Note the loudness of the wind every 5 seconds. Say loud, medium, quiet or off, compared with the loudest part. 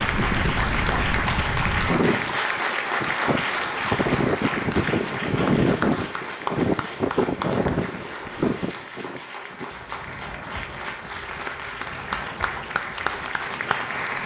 loud, loud, quiet.